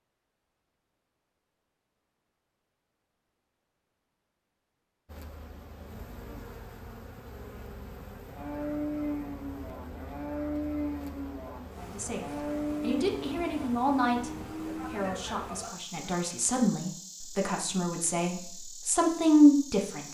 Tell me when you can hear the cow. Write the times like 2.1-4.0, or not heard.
8.2-16.3.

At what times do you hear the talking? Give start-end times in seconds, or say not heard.
11.8-14.3, 14.9-20.1.